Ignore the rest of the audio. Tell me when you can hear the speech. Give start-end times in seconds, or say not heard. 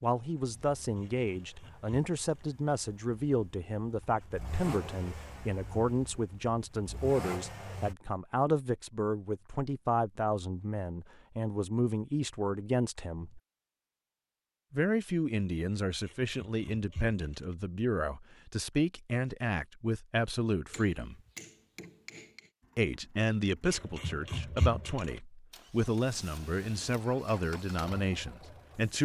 0.0-13.4, 14.7-21.1, 22.8-28.9.